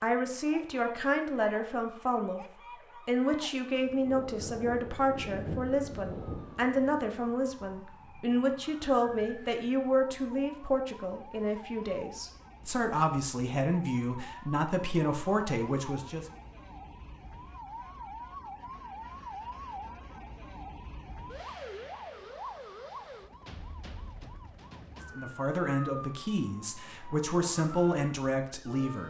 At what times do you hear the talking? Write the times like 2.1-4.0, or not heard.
0.0-2.5, 3.0-16.2, 25.1-29.0.